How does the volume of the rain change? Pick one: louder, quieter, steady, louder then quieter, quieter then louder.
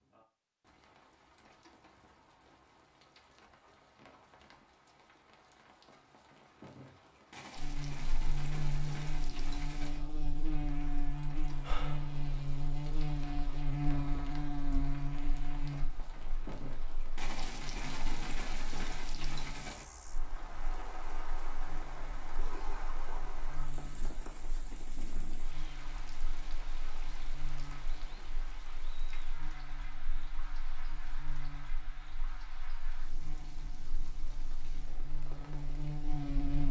louder then quieter.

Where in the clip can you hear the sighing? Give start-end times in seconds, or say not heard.
11.6-12.2.